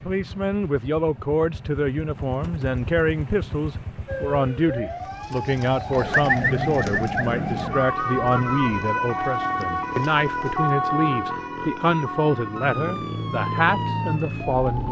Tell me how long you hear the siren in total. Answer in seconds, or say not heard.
11 s.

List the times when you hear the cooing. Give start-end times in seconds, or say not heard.
5.2-10.7.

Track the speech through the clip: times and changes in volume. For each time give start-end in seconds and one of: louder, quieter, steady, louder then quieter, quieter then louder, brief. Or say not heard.
0.1-14.8 steady.